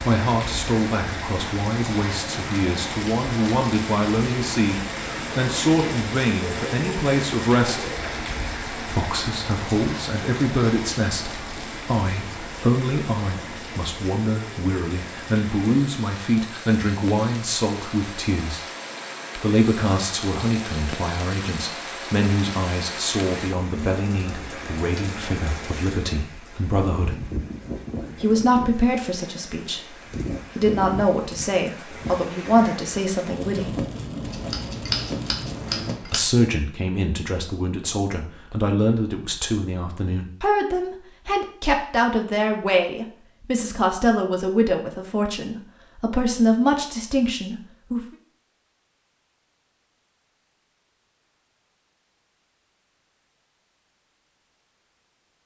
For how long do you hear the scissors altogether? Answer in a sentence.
You can hear the scissors for 2 seconds altogether.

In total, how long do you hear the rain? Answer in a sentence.
You can hear the rain for 36 seconds altogether.